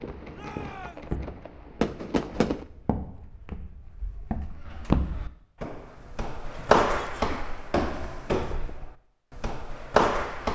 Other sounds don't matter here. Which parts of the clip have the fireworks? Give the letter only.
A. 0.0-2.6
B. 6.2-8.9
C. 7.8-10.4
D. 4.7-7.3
A.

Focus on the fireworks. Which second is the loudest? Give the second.
2 s.